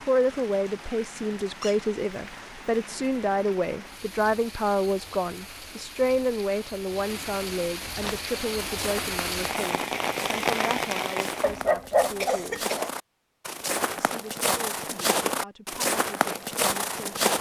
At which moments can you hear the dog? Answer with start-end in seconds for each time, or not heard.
11.4-12.9.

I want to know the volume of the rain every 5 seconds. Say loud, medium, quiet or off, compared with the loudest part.
quiet, medium, loud, off.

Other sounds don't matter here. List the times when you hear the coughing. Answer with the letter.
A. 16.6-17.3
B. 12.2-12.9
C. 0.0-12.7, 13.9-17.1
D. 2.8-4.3
B.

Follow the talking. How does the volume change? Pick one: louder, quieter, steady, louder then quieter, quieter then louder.
quieter.